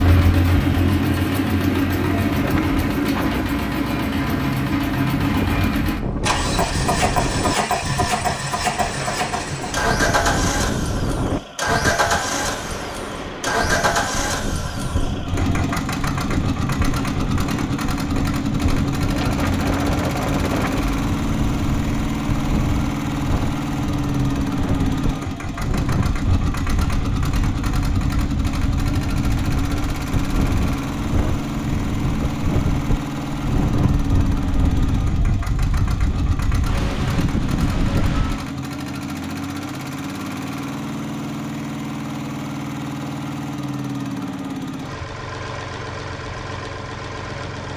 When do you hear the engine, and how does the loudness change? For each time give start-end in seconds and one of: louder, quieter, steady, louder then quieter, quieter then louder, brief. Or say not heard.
0.0-47.7 quieter.